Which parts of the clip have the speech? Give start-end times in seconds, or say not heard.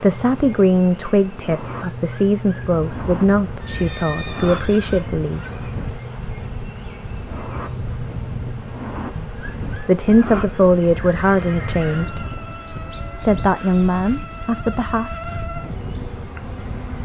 0.0-5.4, 9.2-15.4.